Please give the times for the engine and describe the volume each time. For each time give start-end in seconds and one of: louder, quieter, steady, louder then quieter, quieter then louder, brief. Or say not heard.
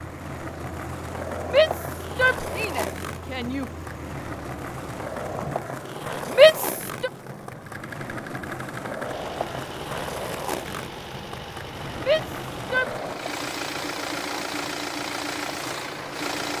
0.0-5.8 steady
7.5-16.5 louder.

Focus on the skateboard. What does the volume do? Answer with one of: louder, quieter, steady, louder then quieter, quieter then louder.
quieter.